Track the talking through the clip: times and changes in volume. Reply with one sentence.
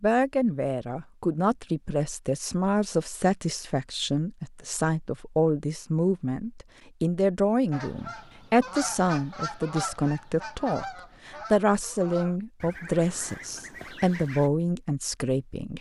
The talking can be heard from 0.0 to 15.7 s, at a steady volume.